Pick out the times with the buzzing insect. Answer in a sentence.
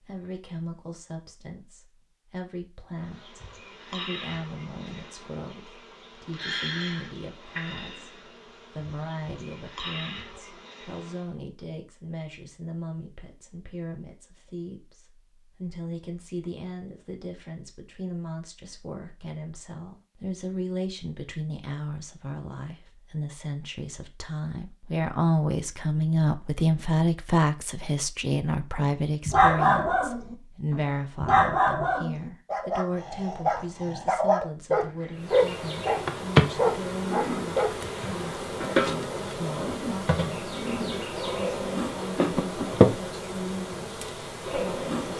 You can hear the buzzing insect from 3.0 to 11.3 s and from 35.1 to 45.1 s.